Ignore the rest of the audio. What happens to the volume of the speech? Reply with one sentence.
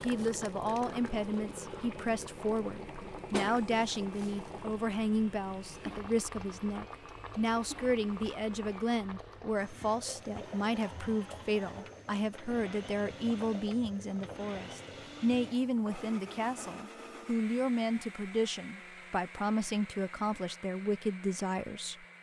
The volume of the speech stays about the same.